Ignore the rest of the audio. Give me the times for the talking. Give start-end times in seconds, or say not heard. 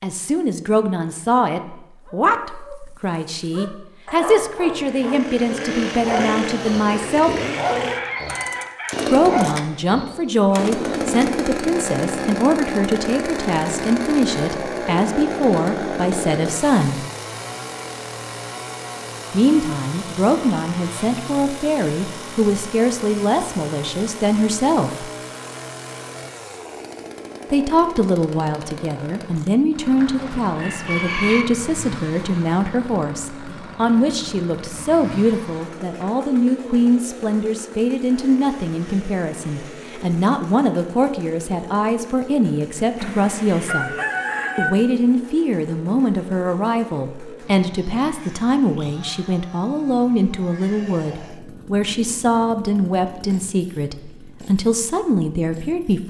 0.0-7.3, 9.1-17.1, 19.3-25.1, 27.5-43.9, 44.5-56.0.